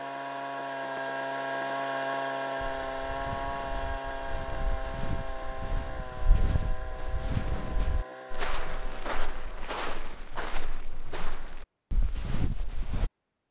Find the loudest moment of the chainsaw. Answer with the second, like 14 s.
2 s.